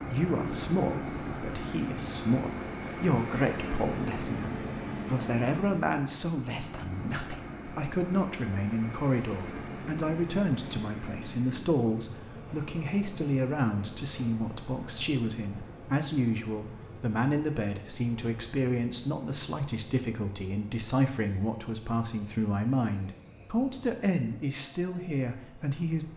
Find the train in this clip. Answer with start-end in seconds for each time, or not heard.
0.0-26.1.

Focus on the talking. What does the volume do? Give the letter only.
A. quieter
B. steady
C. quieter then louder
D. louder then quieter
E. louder
B.